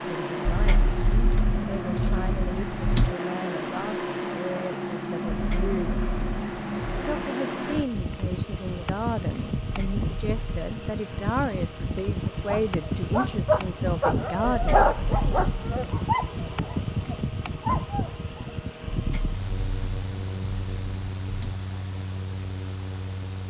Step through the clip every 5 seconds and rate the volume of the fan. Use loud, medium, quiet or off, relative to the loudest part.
loud, loud, loud, loud, medium.